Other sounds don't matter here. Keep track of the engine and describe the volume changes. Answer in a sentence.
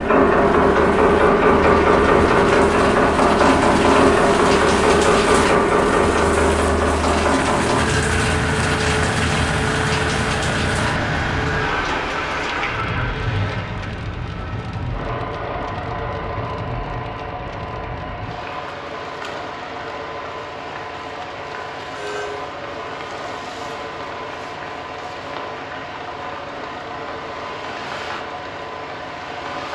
The loudness of the engine goes down.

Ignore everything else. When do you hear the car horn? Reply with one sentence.
You can hear the car horn from 21.9 to 22.4 s.